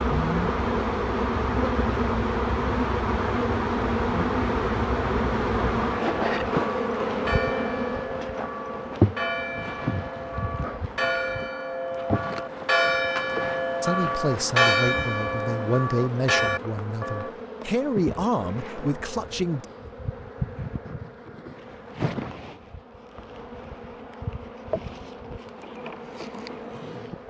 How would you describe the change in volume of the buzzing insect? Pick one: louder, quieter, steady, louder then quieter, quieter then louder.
quieter.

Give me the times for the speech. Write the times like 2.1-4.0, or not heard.
13.8-19.6.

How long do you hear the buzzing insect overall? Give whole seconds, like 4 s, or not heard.
27 s.